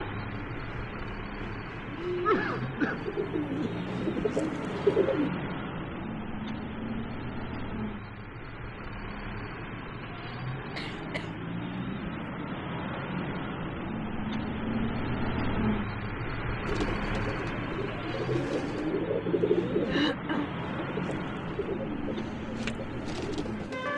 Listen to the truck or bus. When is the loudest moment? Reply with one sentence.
The loudest moment of the truck or bus is at 15 seconds.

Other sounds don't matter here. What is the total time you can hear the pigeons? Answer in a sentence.
You can hear the pigeons for 12 seconds altogether.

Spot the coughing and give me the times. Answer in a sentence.
You can hear the coughing from 2.2 to 3.1 s, from 10.8 to 11.3 s and from 19.9 to 20.5 s.